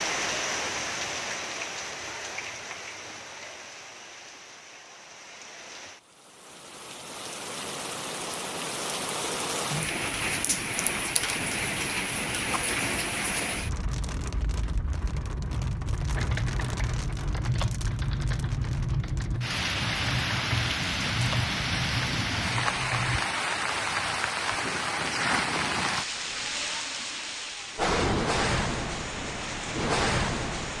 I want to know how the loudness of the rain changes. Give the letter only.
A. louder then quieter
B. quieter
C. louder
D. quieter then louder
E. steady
C.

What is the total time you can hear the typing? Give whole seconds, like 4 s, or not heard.
7 s.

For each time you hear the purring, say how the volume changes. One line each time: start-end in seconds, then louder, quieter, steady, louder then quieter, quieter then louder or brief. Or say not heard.
not heard.